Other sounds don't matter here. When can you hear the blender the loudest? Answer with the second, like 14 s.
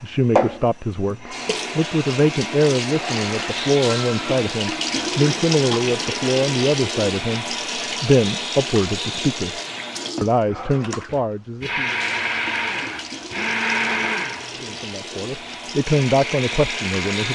14 s.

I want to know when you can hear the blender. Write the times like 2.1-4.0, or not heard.
2.9-4.3, 10.6-17.3.